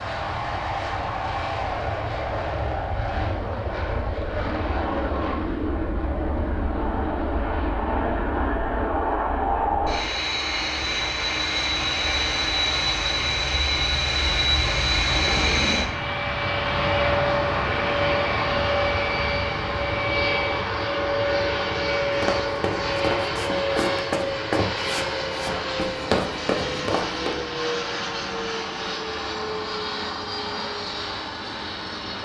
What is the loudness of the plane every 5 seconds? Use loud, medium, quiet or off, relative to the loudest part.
medium, loud, loud, loud, loud, medium, medium.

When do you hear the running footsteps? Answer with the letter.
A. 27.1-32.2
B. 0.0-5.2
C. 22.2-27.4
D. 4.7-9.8
C.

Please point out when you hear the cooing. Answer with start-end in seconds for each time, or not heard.
not heard.